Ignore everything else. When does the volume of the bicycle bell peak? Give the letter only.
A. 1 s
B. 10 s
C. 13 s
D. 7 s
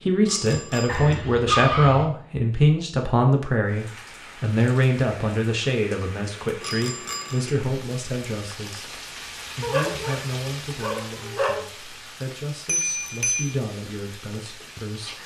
C.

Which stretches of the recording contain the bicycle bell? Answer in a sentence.
You can hear the bicycle bell from 0.2 to 1.1 s, from 6.6 to 7.5 s and from 12.7 to 13.5 s.